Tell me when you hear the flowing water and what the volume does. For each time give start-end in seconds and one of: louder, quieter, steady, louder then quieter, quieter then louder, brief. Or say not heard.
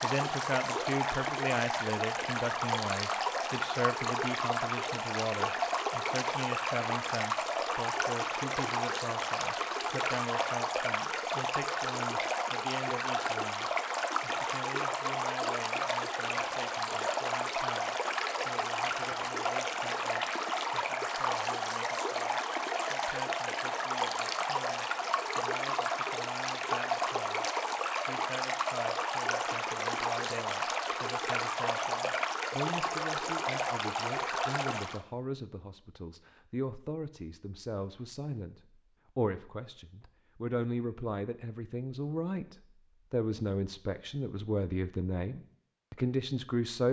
0.0-35.0 steady.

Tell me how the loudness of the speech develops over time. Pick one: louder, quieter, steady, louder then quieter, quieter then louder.
quieter then louder.